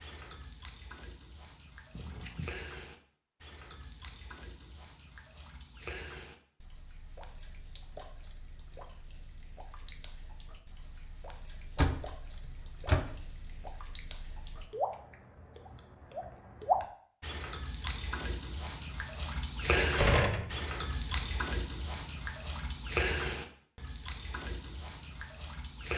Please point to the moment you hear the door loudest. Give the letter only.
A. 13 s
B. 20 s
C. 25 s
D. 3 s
B.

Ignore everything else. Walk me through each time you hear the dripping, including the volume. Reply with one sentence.
The dripping can be heard from 0.0 to 25.9 s, getting louder.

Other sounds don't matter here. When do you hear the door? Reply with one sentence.
You can hear the door from 1.9 to 2.6 s, from 11.8 to 13.2 s and from 19.6 to 20.6 s.